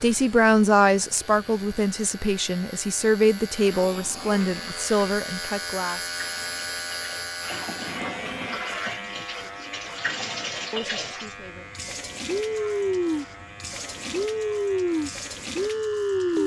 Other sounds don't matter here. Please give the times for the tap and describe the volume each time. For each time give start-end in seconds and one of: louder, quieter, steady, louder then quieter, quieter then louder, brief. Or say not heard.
0.0-16.4 louder.